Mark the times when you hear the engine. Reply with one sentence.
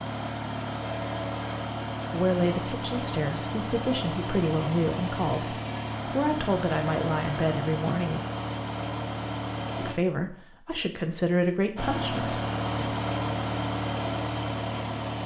The engine can be heard from 0.0 to 9.9 s and from 11.8 to 15.2 s.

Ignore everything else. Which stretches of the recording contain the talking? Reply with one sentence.
The talking can be heard from 2.1 to 8.2 s and from 9.8 to 12.8 s.